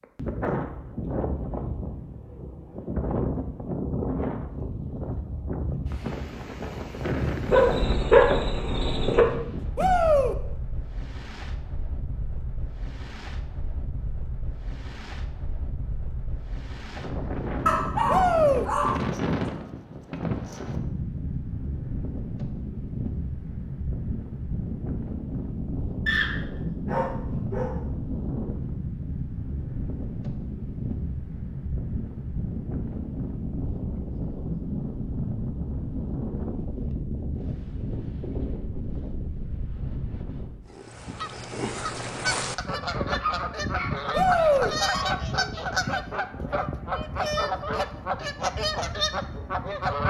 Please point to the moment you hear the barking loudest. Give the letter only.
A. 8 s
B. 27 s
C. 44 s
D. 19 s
A.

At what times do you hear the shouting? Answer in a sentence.
The shouting can be heard from 9.8 to 10.3 s, from 18.1 to 18.6 s and from 44.1 to 44.7 s.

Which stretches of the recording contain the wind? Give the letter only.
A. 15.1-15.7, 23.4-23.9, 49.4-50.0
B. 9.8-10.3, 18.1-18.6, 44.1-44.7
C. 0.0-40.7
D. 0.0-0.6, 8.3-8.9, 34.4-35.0
C.